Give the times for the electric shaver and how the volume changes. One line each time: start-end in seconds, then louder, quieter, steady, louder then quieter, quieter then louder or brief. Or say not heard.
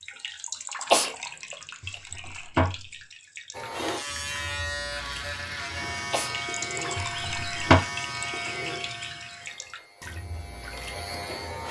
3.5-11.6 quieter.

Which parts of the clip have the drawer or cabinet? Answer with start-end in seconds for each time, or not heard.
1.8-2.9, 7.0-7.8.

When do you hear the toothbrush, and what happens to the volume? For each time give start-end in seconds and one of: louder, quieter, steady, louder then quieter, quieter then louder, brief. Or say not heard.
not heard.